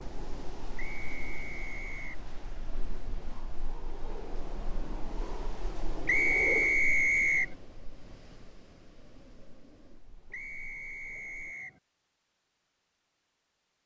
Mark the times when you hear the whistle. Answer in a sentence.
You can hear the whistle from 0.8 to 2.2 s, from 6.0 to 7.5 s and from 10.3 to 11.8 s.